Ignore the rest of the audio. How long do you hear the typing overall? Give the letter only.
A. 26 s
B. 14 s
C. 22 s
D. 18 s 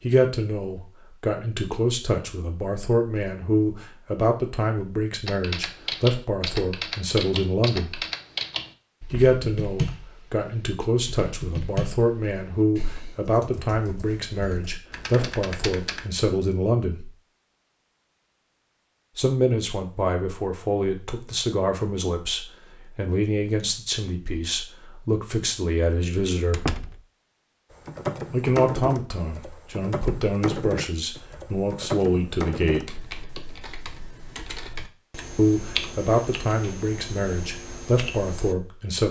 C.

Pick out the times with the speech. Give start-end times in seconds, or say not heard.
0.0-8.0, 9.1-17.1, 19.1-26.8, 28.3-33.0, 35.4-39.0.